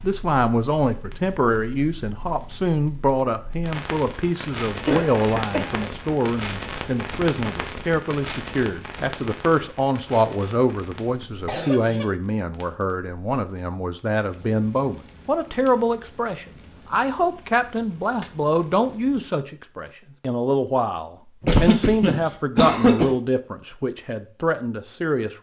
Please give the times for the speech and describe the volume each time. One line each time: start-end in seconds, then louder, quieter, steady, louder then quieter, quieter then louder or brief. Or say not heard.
0.0-25.3 steady.